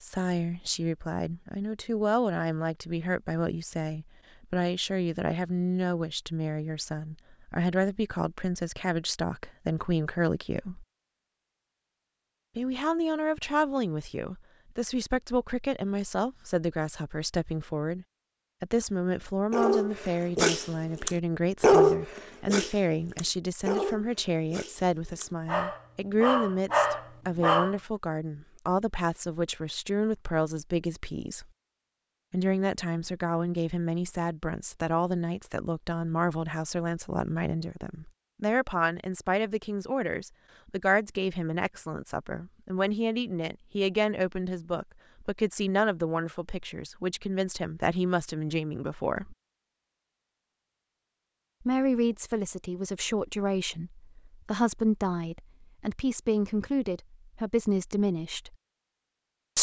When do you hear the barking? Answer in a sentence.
You can hear the barking from 19.5 to 27.8 s.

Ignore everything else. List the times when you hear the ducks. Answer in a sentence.
The ducks can't be heard in this clip.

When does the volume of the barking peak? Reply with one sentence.
The loudest moment of the barking is at 22 seconds.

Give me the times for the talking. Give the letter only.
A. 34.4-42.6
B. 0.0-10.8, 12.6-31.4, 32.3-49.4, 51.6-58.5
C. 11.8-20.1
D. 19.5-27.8
B.